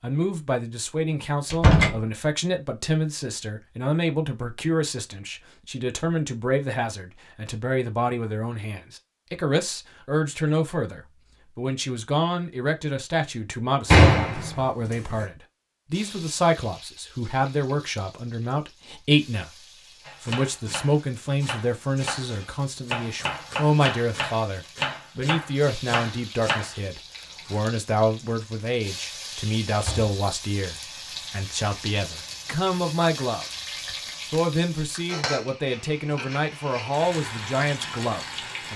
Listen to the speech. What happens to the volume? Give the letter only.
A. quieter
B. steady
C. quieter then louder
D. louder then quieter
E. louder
B.